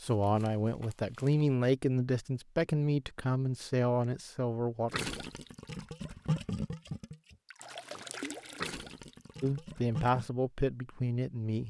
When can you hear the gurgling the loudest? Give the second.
6 s.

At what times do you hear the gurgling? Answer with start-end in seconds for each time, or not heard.
4.9-10.3.